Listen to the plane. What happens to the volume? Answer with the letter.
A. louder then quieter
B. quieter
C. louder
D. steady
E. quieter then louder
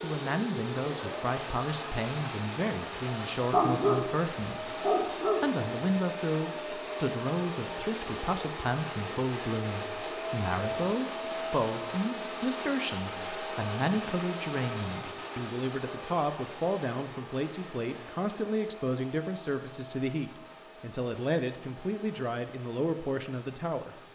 B.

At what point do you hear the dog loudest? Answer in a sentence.
The loudest moment of the dog is at 4 seconds.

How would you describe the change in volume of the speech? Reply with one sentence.
The volume of the speech stays about the same.